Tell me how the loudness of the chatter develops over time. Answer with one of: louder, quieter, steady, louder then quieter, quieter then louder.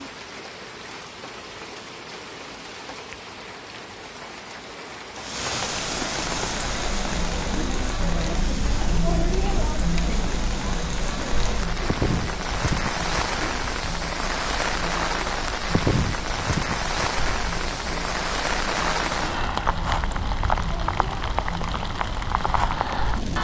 quieter.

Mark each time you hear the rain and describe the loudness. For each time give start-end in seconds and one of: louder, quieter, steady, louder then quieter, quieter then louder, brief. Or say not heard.
0.0-23.3 louder.